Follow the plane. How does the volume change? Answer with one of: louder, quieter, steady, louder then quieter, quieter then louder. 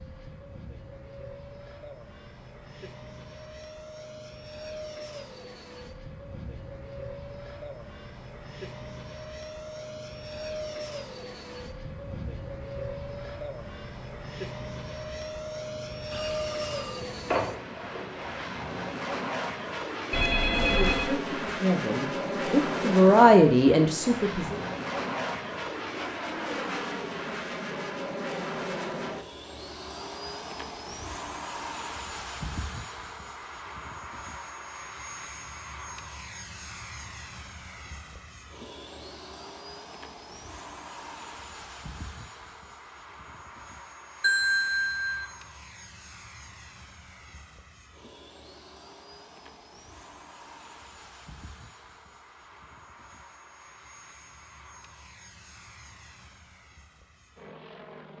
louder then quieter.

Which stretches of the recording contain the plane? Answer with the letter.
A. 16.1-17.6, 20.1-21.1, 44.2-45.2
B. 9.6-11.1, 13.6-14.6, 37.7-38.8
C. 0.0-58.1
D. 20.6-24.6
C.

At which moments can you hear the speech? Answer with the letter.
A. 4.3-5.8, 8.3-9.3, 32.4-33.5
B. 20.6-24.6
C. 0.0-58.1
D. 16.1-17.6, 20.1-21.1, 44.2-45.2
B.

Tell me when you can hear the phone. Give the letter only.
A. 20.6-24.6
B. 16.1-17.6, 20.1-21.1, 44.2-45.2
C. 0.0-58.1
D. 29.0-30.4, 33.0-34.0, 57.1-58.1
B.